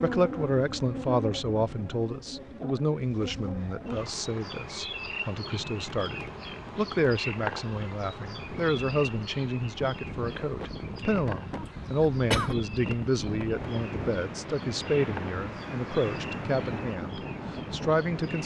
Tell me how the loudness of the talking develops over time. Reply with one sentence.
The volume of the talking stays about the same.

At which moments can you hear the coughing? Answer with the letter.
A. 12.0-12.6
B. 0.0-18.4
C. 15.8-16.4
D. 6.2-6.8
A.